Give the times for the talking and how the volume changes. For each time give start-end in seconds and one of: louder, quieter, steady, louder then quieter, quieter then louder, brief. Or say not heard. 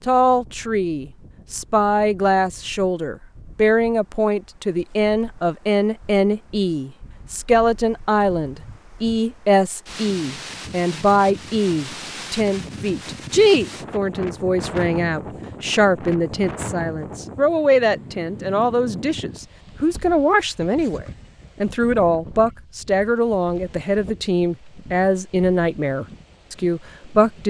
0.1-27.4 steady.